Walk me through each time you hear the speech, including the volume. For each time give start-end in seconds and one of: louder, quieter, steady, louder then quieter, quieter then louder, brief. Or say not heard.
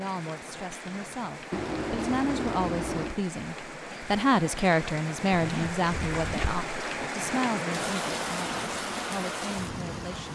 0.0-10.2 louder then quieter.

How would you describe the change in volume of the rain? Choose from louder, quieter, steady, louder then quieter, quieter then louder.
louder.